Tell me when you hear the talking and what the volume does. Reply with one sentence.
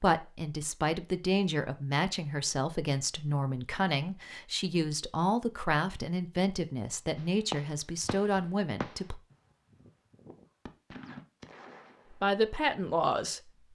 You can hear the talking from 0.0 to 9.2 s, at a steady volume; and briefly from 12.1 to 13.6 s.